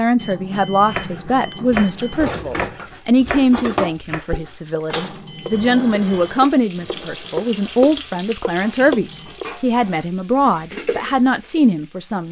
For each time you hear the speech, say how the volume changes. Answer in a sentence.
The speech can be heard from 0.0 to 12.2 s, at a steady volume.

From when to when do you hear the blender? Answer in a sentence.
The blender can't be heard in this clip.